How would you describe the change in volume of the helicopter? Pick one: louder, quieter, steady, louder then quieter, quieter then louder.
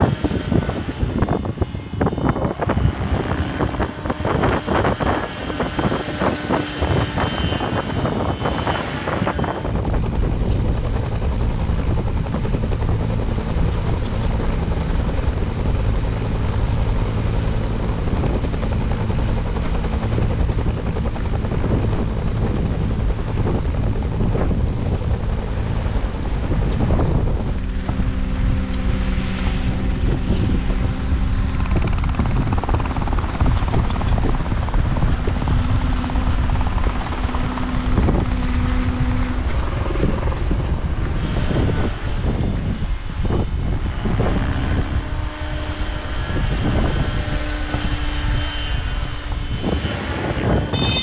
steady.